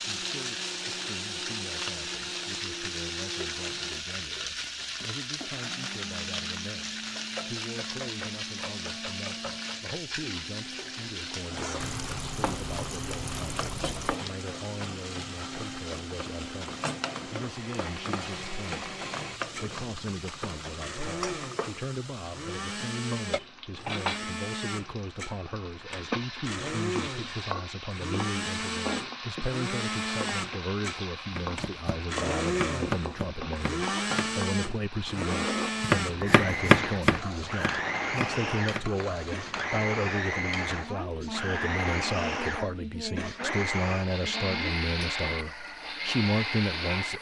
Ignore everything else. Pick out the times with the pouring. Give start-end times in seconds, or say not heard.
11.8-14.2.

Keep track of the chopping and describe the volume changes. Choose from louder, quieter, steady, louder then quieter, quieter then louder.
louder then quieter.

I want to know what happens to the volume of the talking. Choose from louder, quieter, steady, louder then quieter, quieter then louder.
louder.